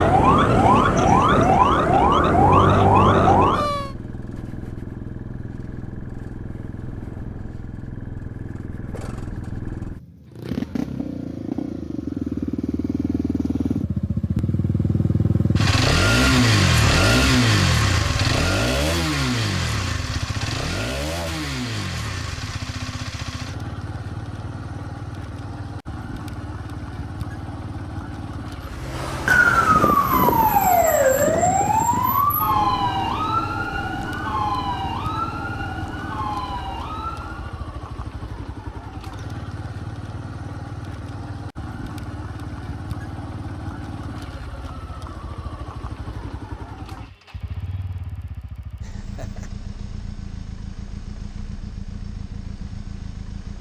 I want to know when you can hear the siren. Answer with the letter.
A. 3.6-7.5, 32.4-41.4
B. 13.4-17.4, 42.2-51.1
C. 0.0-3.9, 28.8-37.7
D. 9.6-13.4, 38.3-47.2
C.